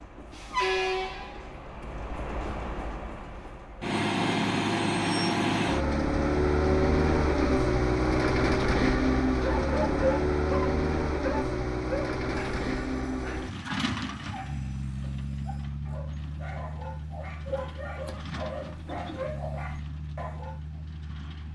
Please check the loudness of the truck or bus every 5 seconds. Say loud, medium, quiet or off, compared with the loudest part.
medium, loud, medium, quiet, quiet.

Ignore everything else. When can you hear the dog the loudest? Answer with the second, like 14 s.
10 s.